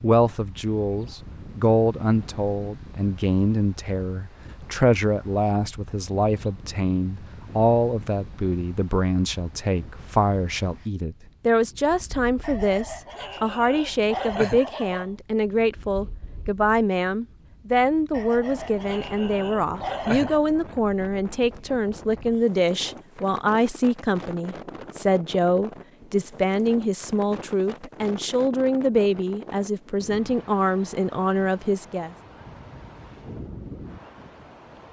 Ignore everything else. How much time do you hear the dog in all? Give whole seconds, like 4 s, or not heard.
5 s.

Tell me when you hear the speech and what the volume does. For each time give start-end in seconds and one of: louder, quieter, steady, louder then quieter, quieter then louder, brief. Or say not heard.
0.0-32.1 steady.